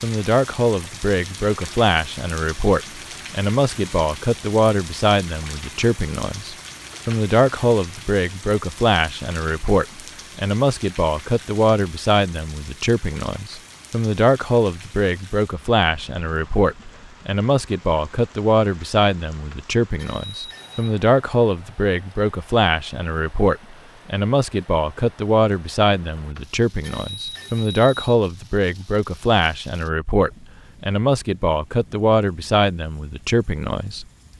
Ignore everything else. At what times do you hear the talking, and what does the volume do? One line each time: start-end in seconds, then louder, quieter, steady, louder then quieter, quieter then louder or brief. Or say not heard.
0.0-34.0 steady.